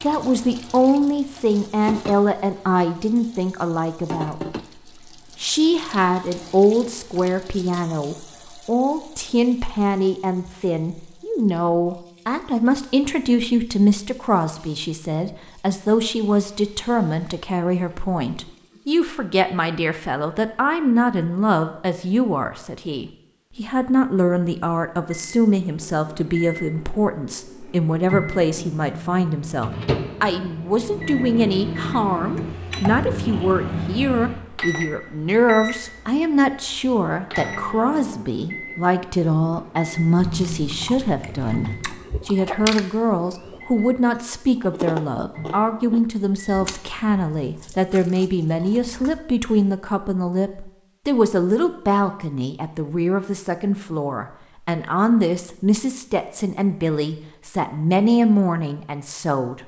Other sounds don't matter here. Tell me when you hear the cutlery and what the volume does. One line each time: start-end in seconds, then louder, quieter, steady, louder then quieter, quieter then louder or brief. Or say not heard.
not heard.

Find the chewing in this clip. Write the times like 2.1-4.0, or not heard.
40.1-49.2.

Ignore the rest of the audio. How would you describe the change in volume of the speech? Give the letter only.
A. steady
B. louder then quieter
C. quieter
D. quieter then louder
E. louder
A.